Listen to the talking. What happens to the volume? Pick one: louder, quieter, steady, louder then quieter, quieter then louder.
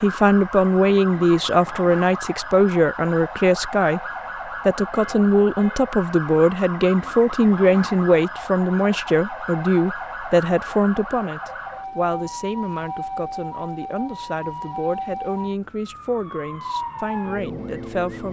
quieter.